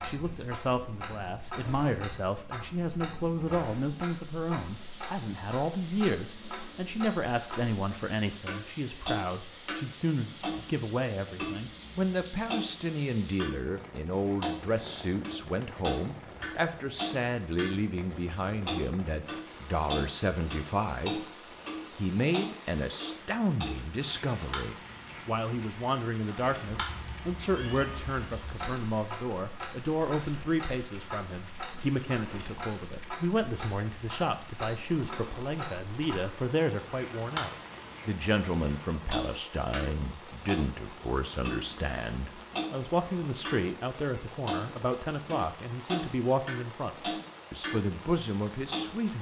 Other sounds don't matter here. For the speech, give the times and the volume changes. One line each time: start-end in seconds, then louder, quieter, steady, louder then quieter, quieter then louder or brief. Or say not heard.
0.0-21.2 steady
21.9-49.1 steady.